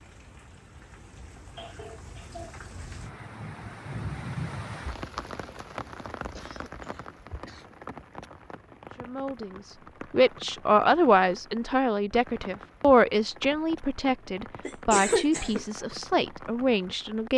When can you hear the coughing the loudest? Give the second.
15 s.